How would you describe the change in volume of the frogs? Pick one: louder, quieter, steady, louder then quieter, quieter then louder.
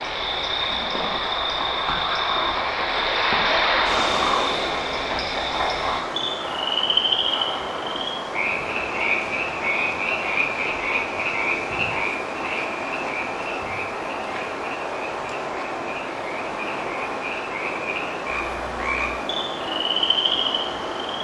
quieter then louder.